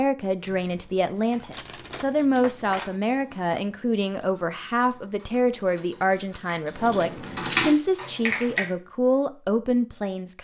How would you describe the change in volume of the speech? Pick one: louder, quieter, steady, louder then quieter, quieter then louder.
steady.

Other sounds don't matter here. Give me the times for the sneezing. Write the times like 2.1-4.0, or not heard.
not heard.